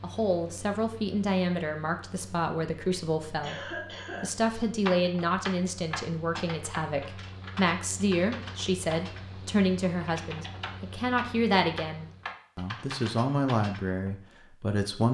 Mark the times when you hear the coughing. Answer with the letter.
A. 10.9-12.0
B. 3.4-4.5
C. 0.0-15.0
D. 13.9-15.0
B.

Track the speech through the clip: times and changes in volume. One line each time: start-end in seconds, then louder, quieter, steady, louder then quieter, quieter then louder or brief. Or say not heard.
0.0-15.0 steady.